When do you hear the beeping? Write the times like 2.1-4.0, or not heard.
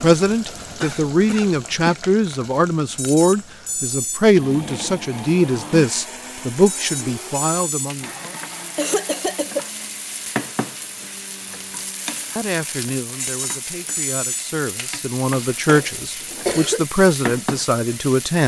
3.0-4.3, 6.7-8.0, 13.2-14.6.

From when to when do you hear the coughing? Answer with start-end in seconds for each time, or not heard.
0.6-1.9, 8.2-9.7, 15.7-16.8.